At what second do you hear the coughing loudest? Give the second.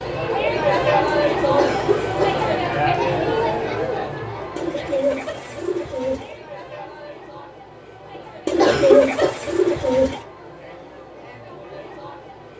9 s.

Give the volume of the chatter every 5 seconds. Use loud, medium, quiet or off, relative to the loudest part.
loud, quiet, quiet.